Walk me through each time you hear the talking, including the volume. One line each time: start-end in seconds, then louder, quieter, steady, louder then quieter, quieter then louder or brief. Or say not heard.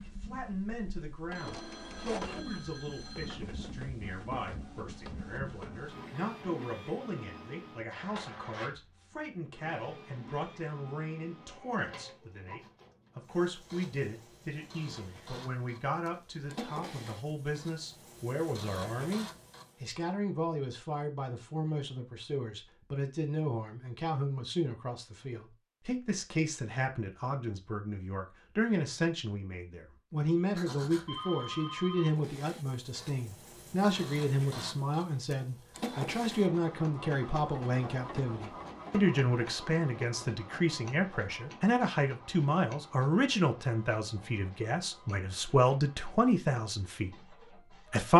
0.1-48.1 louder.